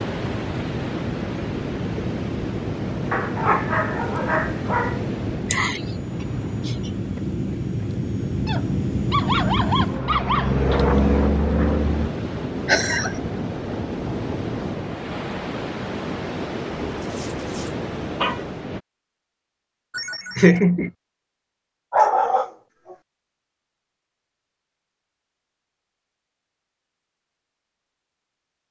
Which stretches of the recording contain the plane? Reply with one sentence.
You can hear the plane from 0.0 to 12.1 s.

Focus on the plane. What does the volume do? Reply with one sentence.
The volume of the plane goes up.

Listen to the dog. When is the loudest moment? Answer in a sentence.
The loudest moment of the dog is at 22 seconds.